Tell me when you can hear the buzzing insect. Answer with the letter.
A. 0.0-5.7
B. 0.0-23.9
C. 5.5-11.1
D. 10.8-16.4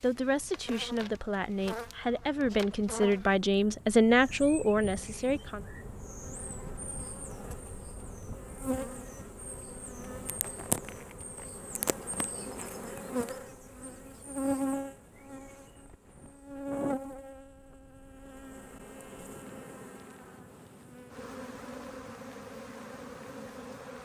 B.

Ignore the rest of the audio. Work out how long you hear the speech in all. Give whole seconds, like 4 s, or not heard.
6 s.